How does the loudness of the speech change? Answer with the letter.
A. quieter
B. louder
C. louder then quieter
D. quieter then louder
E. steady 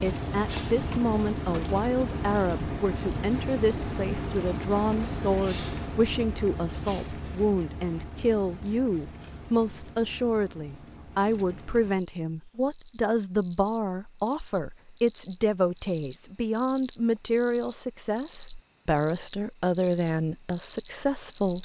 E.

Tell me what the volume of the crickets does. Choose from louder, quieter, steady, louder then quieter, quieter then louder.
quieter then louder.